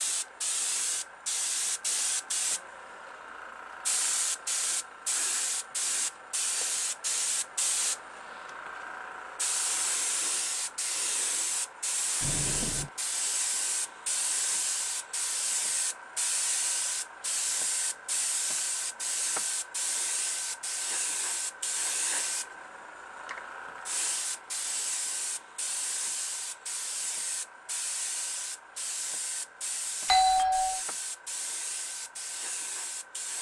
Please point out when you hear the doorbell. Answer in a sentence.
The doorbell can be heard from 12.2 to 12.9 s and from 30.1 to 30.8 s.